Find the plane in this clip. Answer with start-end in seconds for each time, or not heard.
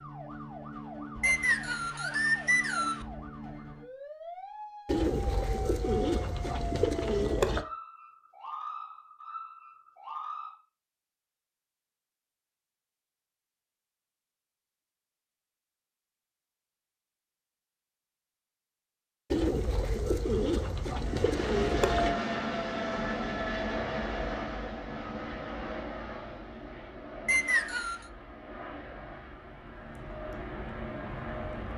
20.9-31.7.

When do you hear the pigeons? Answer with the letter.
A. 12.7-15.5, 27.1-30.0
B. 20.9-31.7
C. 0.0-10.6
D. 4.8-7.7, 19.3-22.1
D.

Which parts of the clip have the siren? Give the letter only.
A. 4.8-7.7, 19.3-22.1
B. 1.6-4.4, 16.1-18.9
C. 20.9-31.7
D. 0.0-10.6
D.